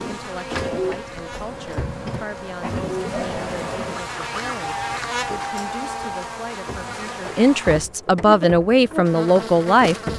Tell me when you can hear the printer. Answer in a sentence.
You can hear the printer from 0.0 to 10.1 s.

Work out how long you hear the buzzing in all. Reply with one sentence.
The buzzing can be heard for 10 seconds in total.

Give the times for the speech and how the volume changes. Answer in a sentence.
The speech can be heard from 0.1 to 9.9 s, getting louder.